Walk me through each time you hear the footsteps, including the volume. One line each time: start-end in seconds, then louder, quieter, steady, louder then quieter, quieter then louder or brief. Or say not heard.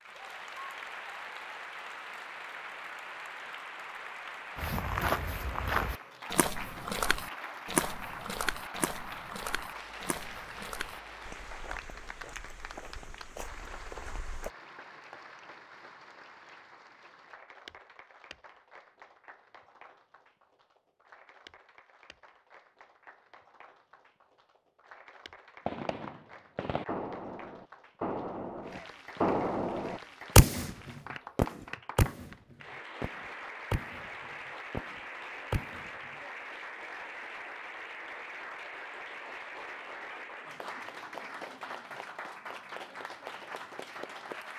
4.5-14.5 quieter.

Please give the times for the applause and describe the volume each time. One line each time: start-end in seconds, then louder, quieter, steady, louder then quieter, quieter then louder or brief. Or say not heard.
0.0-44.5 quieter then louder.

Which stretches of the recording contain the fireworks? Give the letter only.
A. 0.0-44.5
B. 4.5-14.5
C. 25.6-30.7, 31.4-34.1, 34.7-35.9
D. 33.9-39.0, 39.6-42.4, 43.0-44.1
C.